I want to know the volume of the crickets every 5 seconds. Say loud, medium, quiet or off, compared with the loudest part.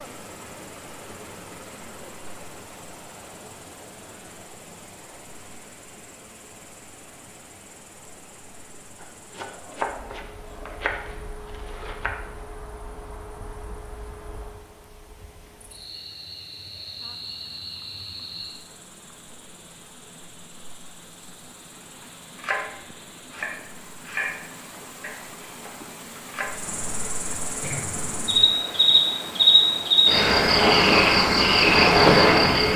quiet, quiet, quiet, quiet, quiet, medium, loud.